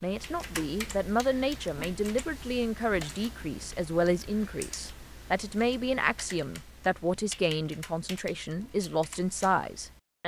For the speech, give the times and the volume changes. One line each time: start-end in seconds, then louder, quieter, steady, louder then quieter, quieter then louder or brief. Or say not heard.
0.0-10.2 steady.